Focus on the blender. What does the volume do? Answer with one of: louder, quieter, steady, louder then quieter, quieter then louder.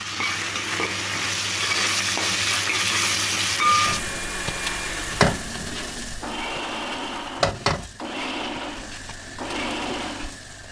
steady.